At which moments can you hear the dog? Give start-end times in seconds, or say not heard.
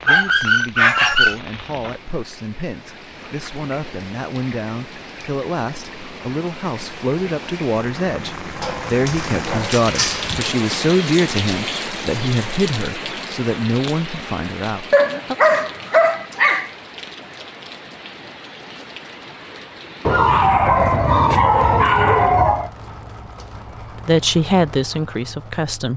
0.1-1.4, 8.6-10.5, 14.9-16.7, 20.1-22.7.